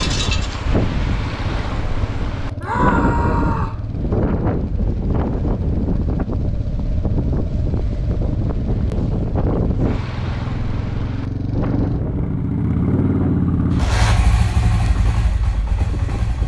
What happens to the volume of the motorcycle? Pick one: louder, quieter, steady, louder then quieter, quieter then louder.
louder.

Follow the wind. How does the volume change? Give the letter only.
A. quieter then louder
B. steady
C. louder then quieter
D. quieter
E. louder
D.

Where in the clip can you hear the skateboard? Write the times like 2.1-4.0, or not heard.
not heard.